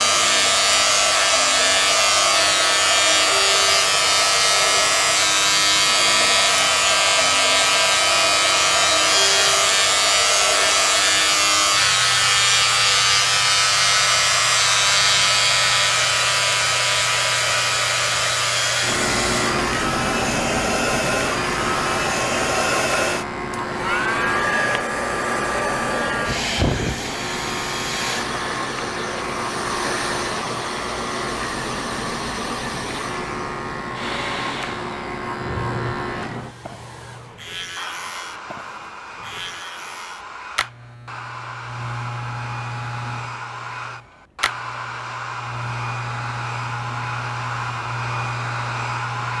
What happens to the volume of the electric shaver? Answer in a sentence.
The loudness of the electric shaver goes down.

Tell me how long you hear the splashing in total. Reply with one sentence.
You can't hear the splashing here.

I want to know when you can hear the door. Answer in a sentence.
You can't hear the door here.